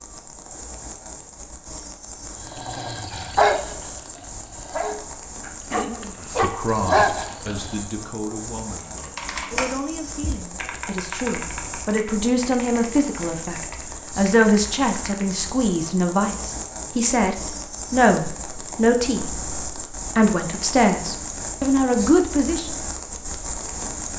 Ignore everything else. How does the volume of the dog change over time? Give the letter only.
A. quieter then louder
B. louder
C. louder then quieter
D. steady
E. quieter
A.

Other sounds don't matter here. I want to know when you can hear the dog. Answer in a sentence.
The dog can be heard from 2.5 to 7.8 s.